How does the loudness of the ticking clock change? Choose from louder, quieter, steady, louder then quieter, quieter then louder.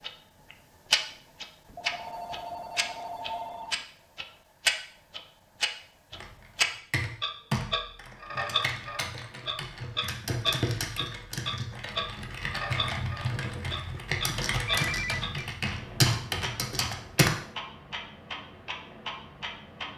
quieter.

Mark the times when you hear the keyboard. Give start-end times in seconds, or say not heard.
6.1-17.3.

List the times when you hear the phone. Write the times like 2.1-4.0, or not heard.
1.6-3.9, 14.7-15.5.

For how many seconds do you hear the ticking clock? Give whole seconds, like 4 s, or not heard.
20 s.